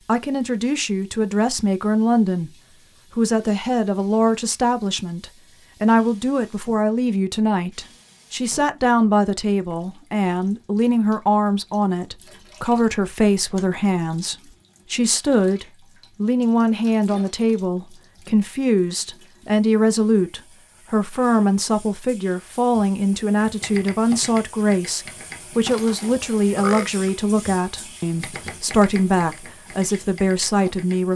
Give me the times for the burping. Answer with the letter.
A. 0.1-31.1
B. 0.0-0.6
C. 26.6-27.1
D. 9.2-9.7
C.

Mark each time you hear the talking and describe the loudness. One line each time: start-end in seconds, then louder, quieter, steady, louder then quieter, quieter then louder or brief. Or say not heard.
0.1-31.1 steady.